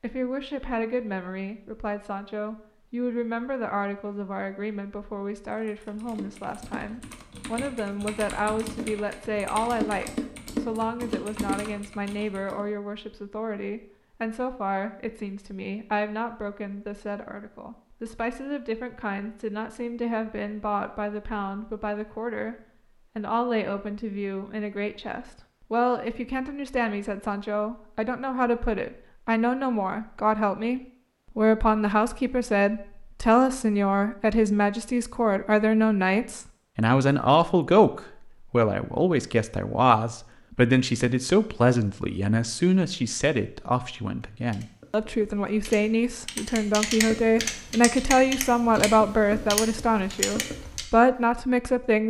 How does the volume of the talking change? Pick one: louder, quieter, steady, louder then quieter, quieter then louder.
louder.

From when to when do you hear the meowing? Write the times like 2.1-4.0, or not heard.
not heard.